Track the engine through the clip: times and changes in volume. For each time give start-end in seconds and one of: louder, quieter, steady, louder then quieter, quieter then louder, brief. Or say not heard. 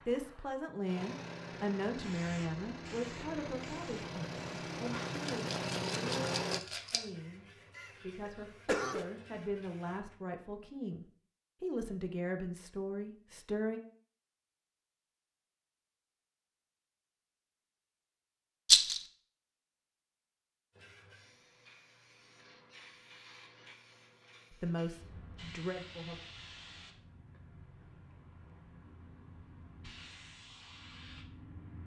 0.0-6.6 louder.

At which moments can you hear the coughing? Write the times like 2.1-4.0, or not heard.
7.8-9.1.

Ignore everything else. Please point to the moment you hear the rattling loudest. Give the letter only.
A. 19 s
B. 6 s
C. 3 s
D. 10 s
A.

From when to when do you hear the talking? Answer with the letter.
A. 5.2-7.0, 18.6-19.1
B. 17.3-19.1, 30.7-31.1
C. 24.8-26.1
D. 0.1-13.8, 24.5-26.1
D.